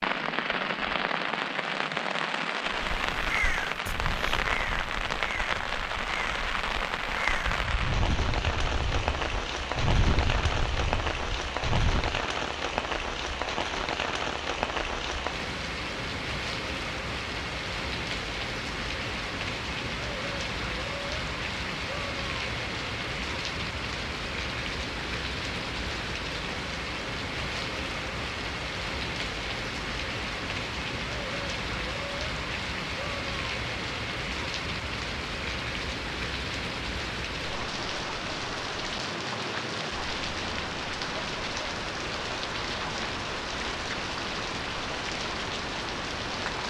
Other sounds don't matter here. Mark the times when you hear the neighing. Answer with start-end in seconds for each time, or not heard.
not heard.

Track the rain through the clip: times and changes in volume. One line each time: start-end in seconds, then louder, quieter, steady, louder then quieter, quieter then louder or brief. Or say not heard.
0.0-46.6 steady.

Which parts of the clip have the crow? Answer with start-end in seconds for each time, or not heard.
2.7-12.2.